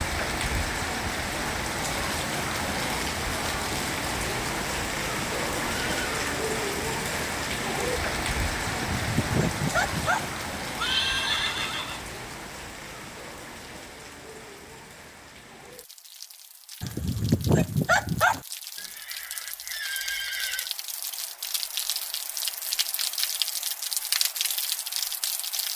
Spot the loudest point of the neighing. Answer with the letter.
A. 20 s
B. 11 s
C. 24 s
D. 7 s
B.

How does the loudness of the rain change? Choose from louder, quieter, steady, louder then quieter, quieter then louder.
quieter then louder.